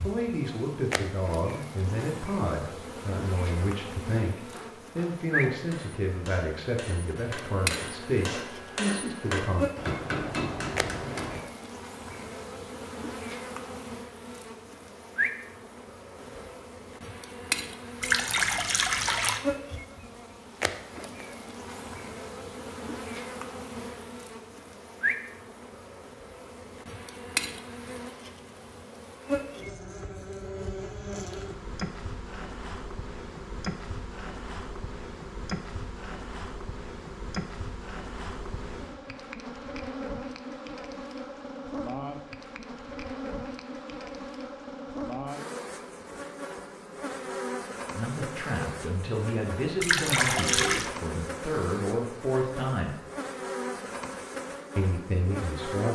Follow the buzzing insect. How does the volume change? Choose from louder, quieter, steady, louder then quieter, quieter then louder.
steady.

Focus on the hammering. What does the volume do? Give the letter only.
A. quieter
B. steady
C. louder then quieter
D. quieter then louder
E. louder
E.